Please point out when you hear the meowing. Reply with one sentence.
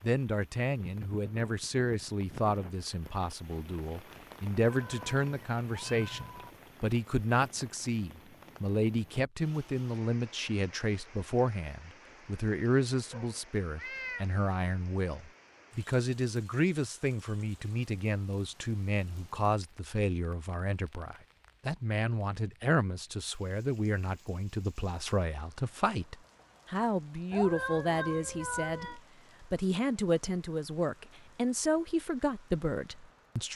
You can hear the meowing from 4.6 to 6.6 s, from 13.1 to 14.3 s and from 27.3 to 29.0 s.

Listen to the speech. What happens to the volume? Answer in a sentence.
The loudness of the speech stays about the same.